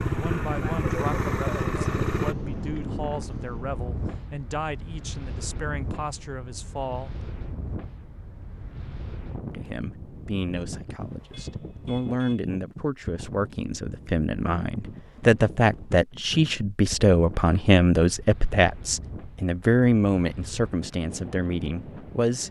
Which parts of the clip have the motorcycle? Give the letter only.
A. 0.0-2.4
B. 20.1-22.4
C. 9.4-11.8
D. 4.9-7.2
A.